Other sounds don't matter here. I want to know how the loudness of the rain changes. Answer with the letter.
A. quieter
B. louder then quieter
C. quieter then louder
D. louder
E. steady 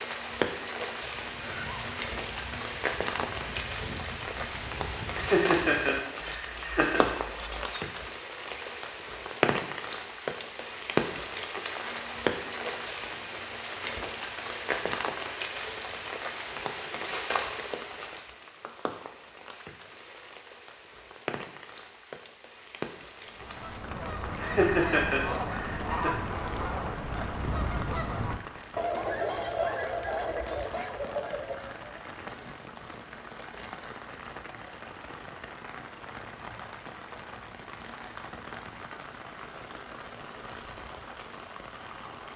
A.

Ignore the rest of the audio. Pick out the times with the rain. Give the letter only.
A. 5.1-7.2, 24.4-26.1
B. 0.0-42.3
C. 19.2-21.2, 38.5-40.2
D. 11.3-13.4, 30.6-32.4
B.